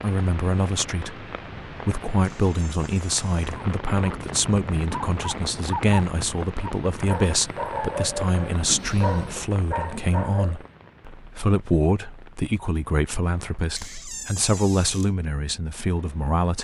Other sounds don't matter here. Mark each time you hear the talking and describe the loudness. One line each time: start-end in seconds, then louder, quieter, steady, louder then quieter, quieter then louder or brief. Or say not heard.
0.0-16.5 steady.